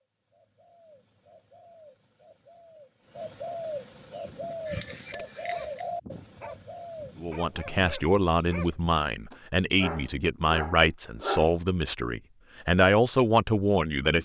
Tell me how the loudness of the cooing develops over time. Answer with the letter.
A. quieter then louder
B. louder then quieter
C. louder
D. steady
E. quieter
B.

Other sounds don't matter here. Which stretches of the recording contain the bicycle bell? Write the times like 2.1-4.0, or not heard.
4.7-5.8.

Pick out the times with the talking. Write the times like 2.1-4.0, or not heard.
7.2-14.2.